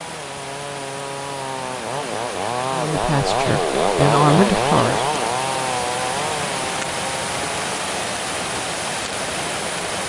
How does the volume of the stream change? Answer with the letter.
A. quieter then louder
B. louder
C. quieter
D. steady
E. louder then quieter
B.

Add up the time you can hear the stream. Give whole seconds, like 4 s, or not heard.
10 s.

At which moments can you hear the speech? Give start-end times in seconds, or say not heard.
2.7-5.2.